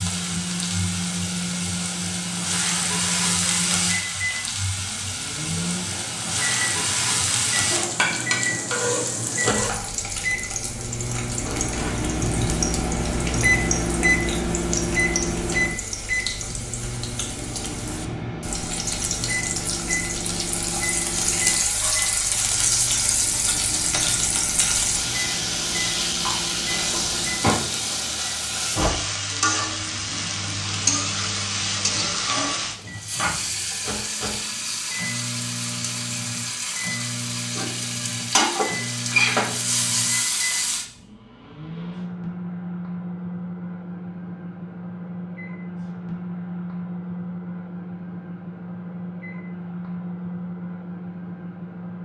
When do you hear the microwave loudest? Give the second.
14 s.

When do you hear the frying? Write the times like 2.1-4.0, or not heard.
0.0-40.9.